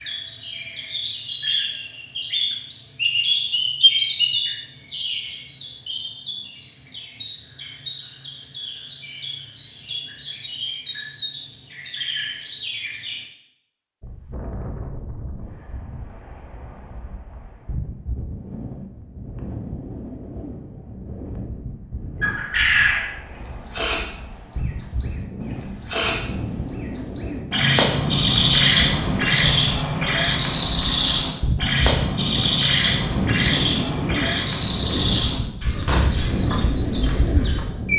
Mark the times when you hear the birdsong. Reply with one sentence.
The birdsong can be heard from 0.0 to 37.9 s.